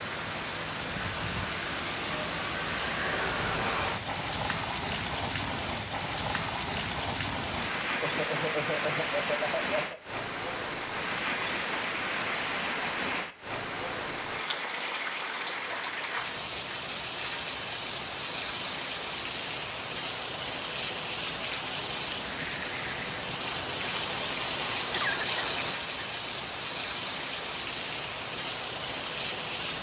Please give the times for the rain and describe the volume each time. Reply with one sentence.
The rain can be heard from 0.0 to 29.7 s, at a steady volume.